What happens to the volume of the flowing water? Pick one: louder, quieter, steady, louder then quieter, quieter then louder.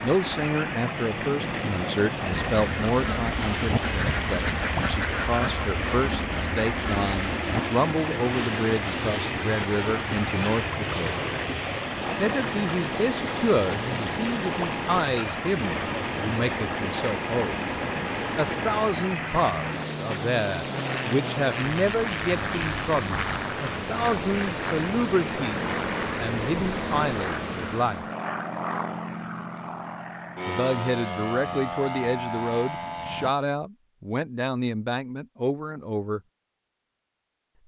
steady.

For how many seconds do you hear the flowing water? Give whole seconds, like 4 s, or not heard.
28 s.